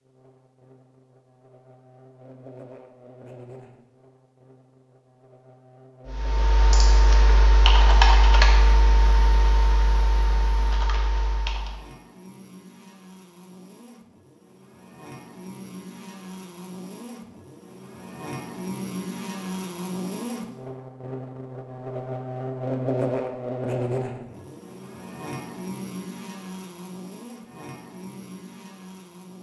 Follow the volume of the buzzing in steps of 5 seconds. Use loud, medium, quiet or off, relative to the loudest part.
quiet, quiet, quiet, medium, loud, medium.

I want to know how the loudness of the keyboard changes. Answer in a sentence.
The loudness of the keyboard goes up, then down.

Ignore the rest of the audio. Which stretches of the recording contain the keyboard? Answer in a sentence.
The keyboard can be heard from 6.0 to 11.8 s.